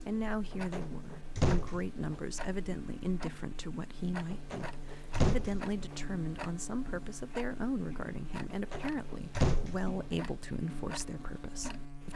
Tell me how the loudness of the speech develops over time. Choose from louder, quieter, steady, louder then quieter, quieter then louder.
steady.